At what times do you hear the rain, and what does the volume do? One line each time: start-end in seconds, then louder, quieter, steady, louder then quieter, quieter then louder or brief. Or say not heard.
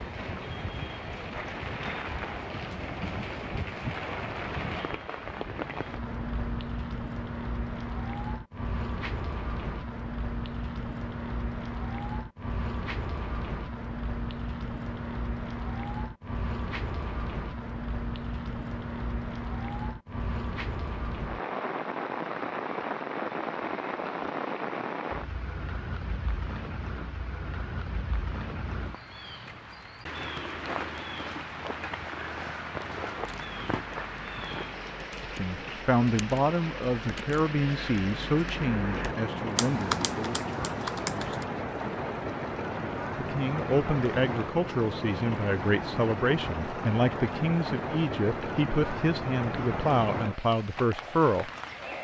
0.0-51.9 steady.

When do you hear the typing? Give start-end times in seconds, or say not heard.
33.1-41.5.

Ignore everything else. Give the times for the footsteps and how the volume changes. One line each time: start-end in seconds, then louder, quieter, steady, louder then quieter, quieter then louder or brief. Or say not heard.
not heard.